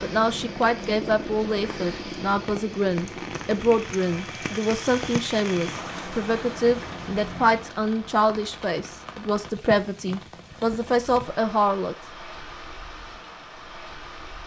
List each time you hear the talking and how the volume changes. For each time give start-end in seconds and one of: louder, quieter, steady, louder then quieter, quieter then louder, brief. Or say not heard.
0.0-11.9 steady.